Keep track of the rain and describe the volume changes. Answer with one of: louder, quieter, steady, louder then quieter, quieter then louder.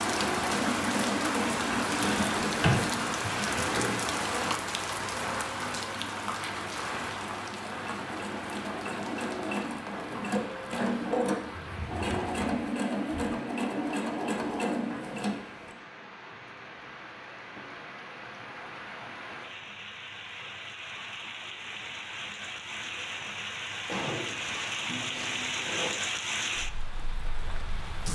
quieter then louder.